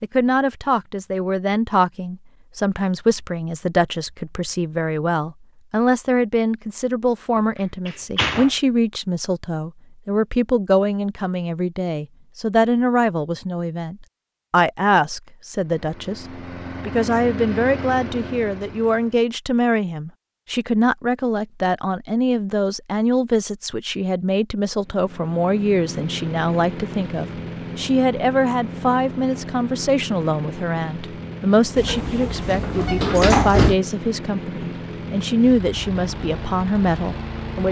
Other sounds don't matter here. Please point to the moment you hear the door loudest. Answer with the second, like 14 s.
33 s.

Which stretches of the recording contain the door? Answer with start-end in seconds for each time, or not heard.
7.3-8.5, 31.8-33.8.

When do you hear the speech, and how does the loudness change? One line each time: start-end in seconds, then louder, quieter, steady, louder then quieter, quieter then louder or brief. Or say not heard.
0.0-37.6 steady.